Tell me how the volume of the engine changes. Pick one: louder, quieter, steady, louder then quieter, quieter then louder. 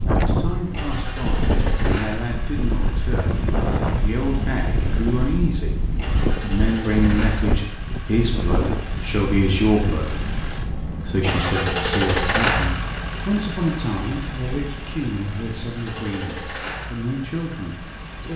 louder then quieter.